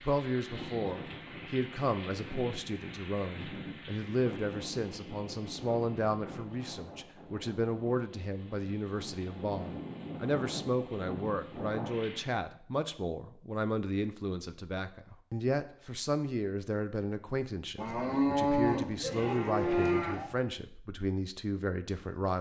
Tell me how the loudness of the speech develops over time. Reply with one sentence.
The loudness of the speech stays about the same.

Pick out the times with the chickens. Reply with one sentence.
The chickens can't be heard in this clip.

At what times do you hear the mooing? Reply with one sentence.
You can hear the mooing from 17.8 to 20.4 s.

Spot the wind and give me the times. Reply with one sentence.
You can hear the wind from 0.0 to 12.3 s.